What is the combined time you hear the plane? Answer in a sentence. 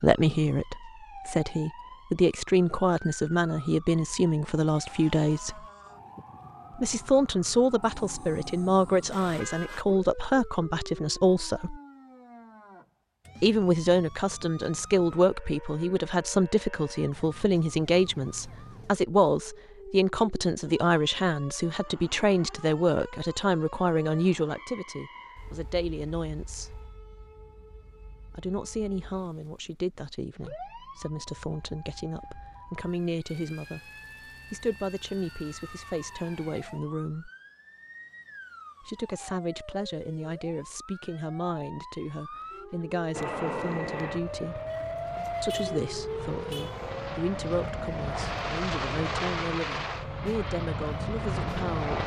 The plane can be heard for 9 seconds in total.